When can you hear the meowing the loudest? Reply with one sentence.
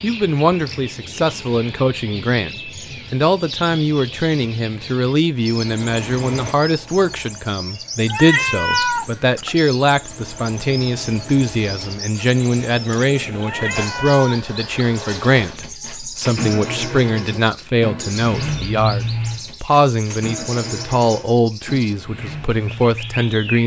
The loudest moment of the meowing is at 9 seconds.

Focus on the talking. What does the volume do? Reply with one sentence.
The volume of the talking stays about the same.